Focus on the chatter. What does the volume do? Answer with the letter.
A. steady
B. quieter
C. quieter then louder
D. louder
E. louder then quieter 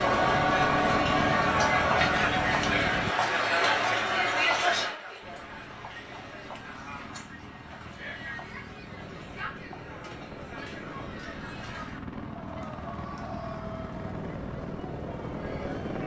B.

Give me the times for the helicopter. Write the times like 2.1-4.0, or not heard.
0.0-3.1, 5.2-16.0.